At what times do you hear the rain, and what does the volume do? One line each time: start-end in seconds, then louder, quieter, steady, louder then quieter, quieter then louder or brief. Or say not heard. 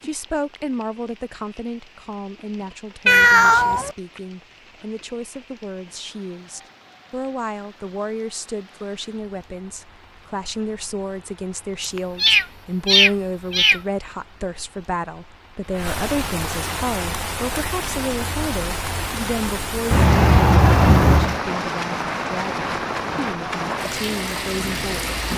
0.0-25.3 louder.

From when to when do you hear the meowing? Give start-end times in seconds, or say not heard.
3.0-4.0, 11.9-13.8, 19.9-21.4.